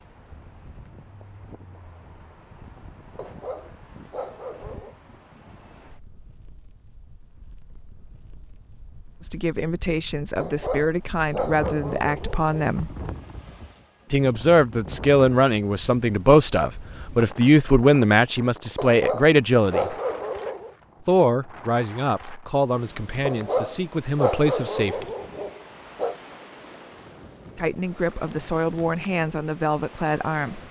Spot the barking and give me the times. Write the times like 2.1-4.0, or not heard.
3.1-5.0, 10.3-12.8, 18.8-20.7, 23.2-26.1.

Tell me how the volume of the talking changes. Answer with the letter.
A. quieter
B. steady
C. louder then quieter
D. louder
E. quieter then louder
C.